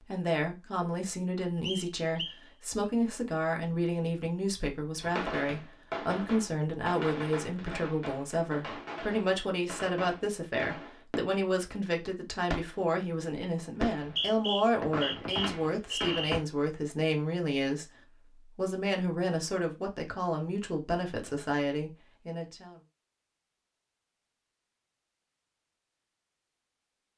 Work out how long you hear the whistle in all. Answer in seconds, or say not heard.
3 s.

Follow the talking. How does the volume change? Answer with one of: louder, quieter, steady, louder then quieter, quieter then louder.
steady.